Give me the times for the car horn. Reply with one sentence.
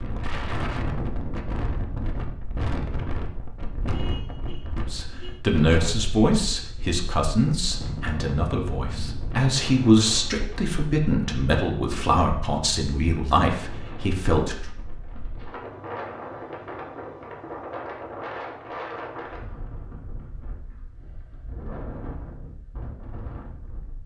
You can hear the car horn from 3.9 to 5.5 s.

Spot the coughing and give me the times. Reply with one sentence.
You can't hear the coughing here.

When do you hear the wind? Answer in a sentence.
The wind can be heard from 0.0 to 24.0 s.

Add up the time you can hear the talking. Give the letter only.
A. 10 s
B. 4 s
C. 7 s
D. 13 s
A.